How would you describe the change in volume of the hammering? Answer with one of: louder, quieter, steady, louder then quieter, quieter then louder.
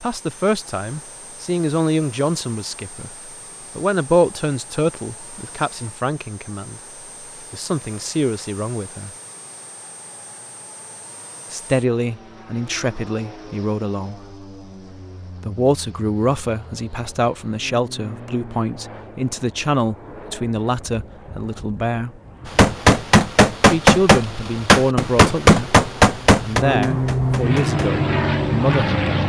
quieter.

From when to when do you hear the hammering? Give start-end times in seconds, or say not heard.
22.4-27.9.